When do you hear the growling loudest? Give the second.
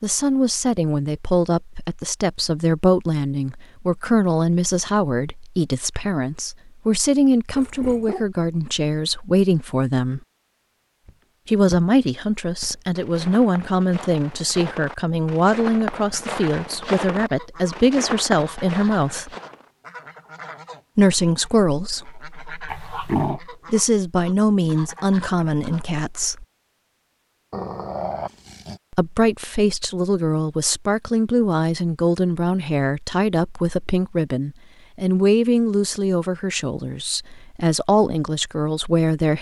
23 s.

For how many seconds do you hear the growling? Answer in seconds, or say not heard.
3 s.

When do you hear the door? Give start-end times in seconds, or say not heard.
not heard.